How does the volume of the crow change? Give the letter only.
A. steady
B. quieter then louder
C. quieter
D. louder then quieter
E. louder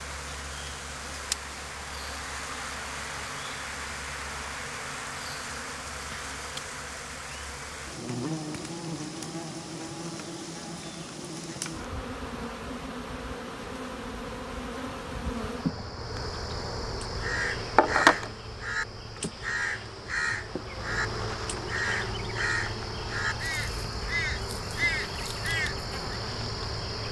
A.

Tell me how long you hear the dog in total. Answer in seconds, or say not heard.
not heard.